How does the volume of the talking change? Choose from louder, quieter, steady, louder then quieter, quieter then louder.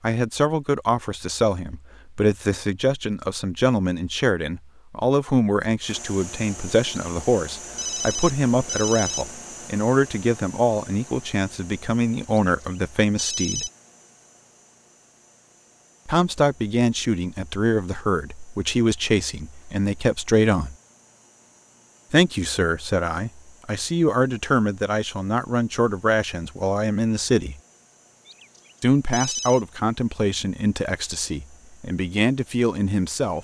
steady.